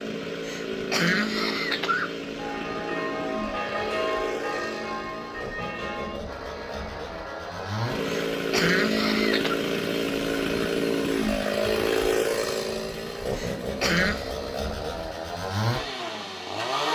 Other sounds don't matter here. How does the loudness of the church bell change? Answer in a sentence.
The loudness of the church bell goes down.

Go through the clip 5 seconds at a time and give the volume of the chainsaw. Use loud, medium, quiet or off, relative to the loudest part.
medium, loud, loud, loud.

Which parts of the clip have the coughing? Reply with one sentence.
The coughing can be heard from 0.5 to 2.1 s, from 8.1 to 9.6 s and from 13.3 to 14.3 s.